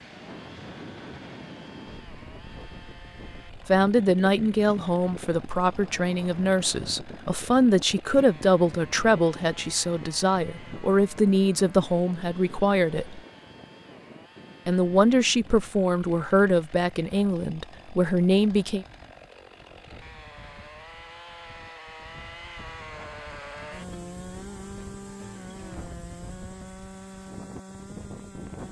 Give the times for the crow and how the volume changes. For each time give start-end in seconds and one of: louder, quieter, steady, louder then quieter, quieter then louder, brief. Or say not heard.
not heard.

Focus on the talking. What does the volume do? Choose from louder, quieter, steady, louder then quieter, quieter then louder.
steady.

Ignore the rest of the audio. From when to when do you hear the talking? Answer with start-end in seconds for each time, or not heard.
3.6-13.2, 14.7-18.9.